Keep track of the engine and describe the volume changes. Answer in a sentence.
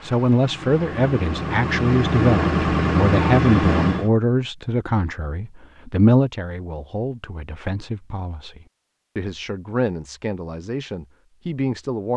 The volume of the engine goes up.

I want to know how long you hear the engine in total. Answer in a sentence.
The engine can be heard for 4 seconds in total.